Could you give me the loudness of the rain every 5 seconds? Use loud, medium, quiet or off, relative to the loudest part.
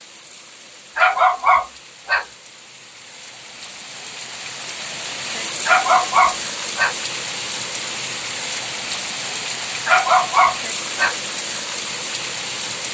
medium, loud, loud.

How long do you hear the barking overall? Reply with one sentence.
You can hear the barking for 4 seconds altogether.